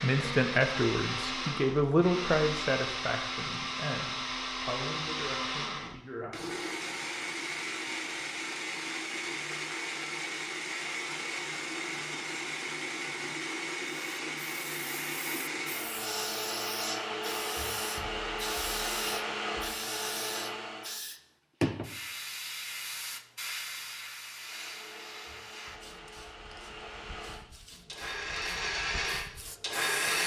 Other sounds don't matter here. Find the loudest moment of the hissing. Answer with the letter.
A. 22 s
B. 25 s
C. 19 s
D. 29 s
A.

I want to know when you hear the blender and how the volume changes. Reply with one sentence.
You can hear the blender from 0.0 to 21.0 s, at a steady volume; and from 24.3 to 30.2 s, getting louder.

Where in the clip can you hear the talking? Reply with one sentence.
The talking can be heard from 0.0 to 6.7 s.